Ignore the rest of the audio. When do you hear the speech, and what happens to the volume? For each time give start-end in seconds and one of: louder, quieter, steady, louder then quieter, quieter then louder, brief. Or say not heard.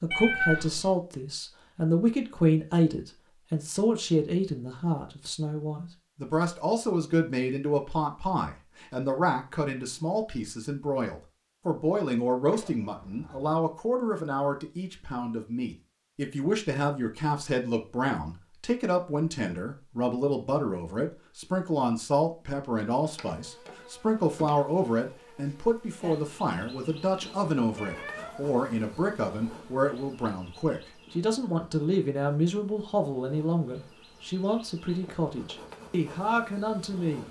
0.0-37.2 steady.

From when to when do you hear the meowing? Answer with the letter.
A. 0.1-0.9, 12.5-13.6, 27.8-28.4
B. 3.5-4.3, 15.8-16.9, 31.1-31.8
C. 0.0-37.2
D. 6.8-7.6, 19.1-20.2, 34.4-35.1
A.